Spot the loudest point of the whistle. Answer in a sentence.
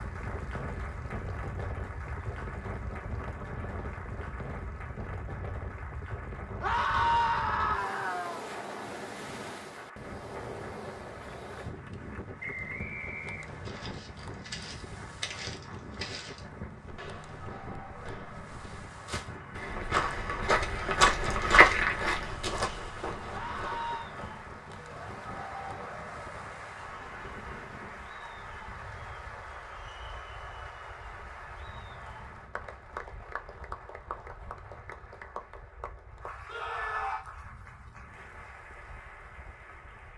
The volume of the whistle peaks at 13 seconds.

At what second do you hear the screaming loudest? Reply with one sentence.
The volume of the screaming peaks at 7 seconds.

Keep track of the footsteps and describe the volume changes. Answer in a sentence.
The loudness of the footsteps goes up, then down.